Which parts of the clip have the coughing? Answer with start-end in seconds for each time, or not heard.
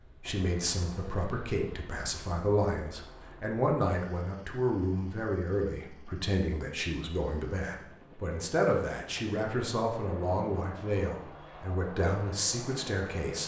not heard.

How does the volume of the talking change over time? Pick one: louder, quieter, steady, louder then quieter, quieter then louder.
steady.